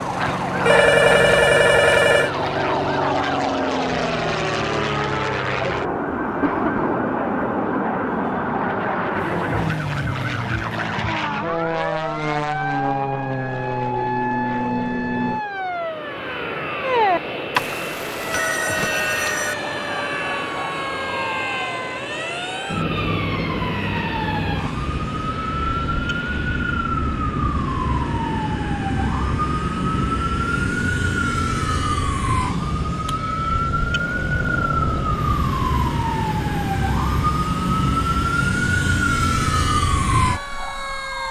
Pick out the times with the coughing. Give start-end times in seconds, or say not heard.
6.4-7.0.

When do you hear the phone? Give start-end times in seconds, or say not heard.
0.6-2.3, 17.6-19.6, 32.5-33.1.